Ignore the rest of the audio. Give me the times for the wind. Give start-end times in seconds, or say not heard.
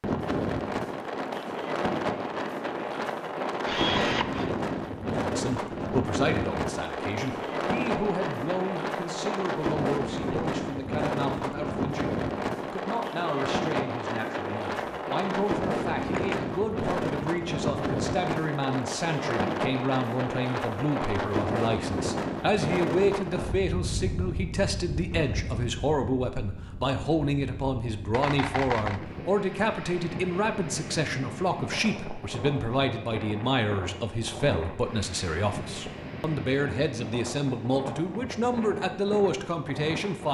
0.0-40.2.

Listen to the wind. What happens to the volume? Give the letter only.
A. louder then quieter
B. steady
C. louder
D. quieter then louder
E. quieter
E.